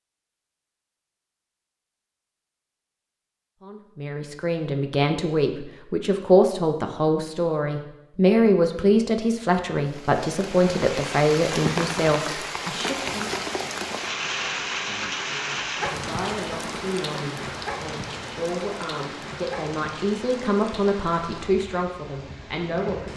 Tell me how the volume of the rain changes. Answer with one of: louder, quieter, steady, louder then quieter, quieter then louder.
quieter.